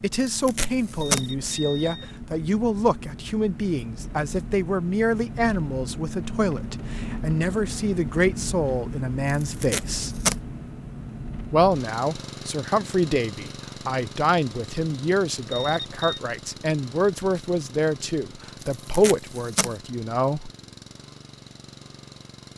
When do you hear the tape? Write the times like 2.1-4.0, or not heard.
0.2-1.2, 9.2-10.3, 18.6-19.7.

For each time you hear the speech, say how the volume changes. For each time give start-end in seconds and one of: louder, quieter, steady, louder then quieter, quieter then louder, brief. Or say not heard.
0.0-10.2 steady
11.5-20.5 steady.